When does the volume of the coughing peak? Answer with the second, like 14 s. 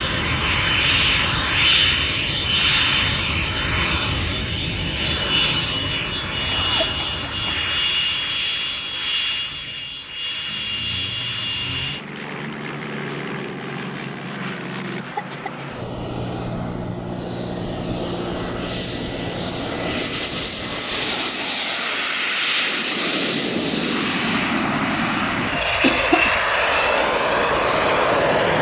26 s.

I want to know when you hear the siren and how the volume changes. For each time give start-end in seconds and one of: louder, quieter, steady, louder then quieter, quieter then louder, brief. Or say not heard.
not heard.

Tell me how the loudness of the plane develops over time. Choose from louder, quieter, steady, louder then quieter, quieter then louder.
quieter then louder.